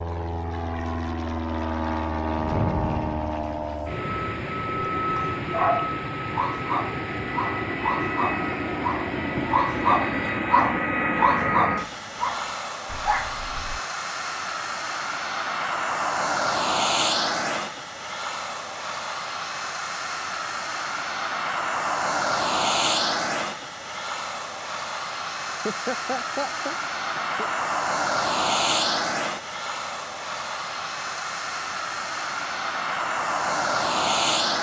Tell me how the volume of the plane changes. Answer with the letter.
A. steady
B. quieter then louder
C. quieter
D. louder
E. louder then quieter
A.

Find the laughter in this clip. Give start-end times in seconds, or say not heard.
25.6-27.4.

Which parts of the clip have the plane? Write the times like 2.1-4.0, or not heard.
0.0-34.5.